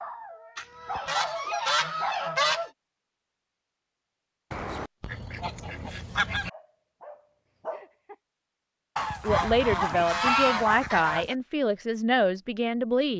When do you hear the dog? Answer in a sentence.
You can hear the dog from 0.0 to 2.7 s and from 6.5 to 8.2 s.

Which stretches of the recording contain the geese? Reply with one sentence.
You can hear the geese from 0.6 to 2.6 s, from 4.5 to 6.5 s and from 8.9 to 11.3 s.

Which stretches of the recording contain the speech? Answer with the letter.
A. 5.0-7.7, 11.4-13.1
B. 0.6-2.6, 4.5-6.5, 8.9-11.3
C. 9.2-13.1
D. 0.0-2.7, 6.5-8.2
C.